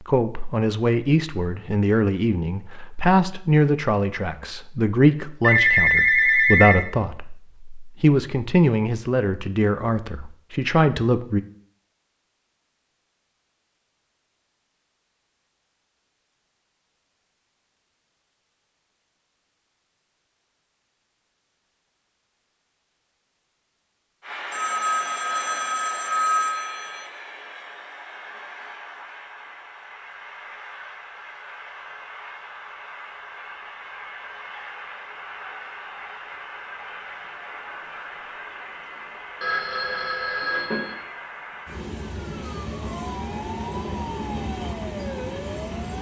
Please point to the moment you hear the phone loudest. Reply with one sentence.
The loudest moment of the phone is at 6 seconds.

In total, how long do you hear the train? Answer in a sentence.
You can hear the train for 22 seconds altogether.